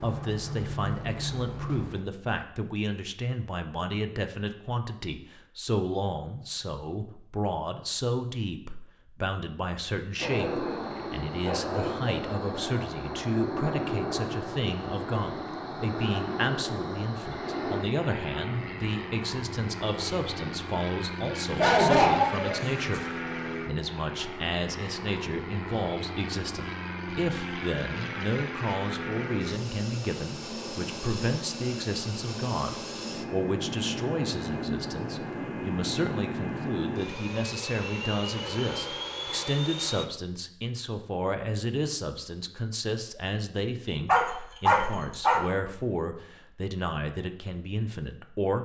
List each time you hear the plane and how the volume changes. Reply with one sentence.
The plane can be heard briefly from 0.0 to 2.0 s; and from 10.2 to 40.0 s, at a steady volume.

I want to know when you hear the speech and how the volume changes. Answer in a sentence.
You can hear the speech from 0.0 to 48.6 s, at a steady volume.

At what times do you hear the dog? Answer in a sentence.
The dog can be heard from 10.2 to 12.2 s, from 21.6 to 23.1 s and from 44.0 to 45.4 s.